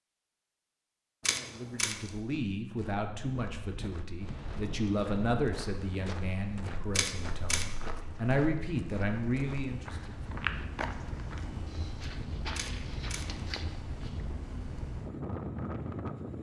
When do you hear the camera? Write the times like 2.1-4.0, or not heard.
1.2-2.1, 7.0-7.7, 12.6-13.4.